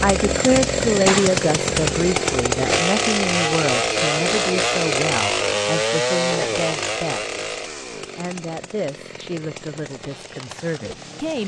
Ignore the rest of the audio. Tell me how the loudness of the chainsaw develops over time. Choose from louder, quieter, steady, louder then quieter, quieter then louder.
quieter.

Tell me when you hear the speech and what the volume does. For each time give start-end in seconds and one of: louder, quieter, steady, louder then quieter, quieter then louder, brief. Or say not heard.
0.0-11.4 quieter.